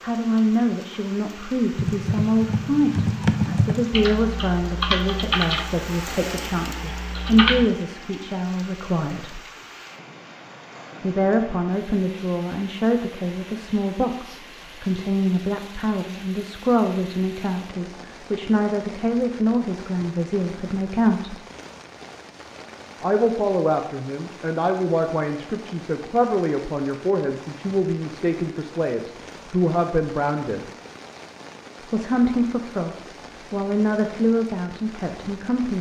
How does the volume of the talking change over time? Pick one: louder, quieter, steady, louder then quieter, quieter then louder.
steady.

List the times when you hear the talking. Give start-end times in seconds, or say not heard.
0.0-9.4, 11.0-21.4, 23.0-30.6, 31.9-35.7.